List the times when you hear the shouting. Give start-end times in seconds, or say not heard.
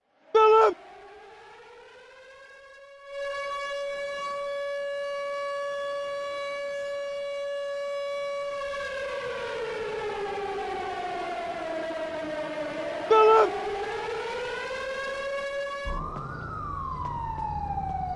0.3-0.8, 13.1-13.5.